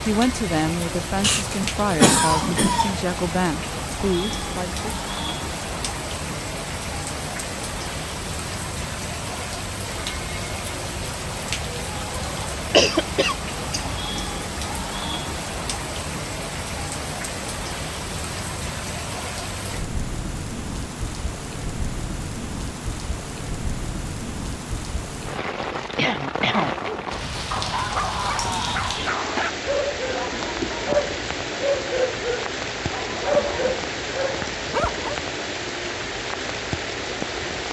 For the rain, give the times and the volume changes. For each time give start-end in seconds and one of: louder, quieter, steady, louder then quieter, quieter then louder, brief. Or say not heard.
0.0-37.6 steady.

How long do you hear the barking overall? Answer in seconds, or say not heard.
8 s.